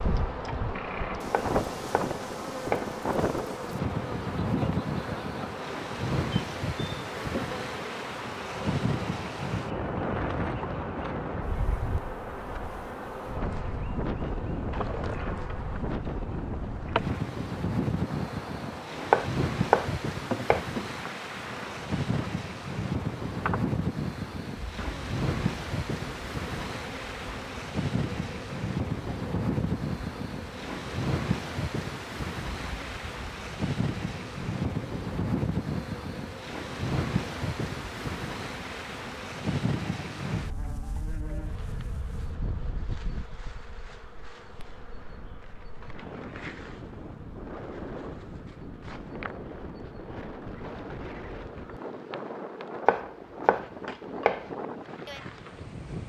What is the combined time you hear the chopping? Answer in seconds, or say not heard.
5 s.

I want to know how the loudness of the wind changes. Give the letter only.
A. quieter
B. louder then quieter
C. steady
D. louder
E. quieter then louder
A.